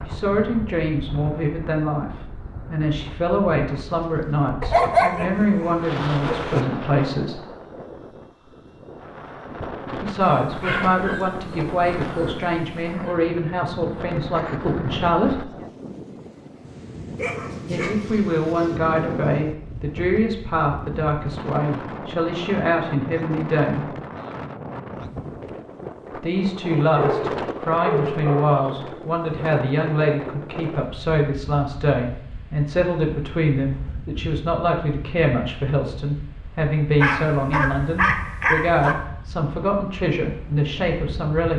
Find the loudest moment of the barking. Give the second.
5 s.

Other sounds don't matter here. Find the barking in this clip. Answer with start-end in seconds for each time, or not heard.
4.6-6.7, 10.2-13.2, 17.1-18.8, 26.9-28.8, 37.0-39.0.